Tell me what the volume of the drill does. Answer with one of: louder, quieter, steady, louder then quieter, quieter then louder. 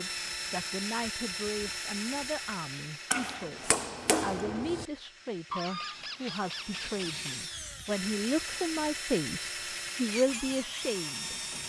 quieter then louder.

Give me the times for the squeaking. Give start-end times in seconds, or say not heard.
5.5-7.5.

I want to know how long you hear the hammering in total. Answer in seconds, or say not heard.
2 s.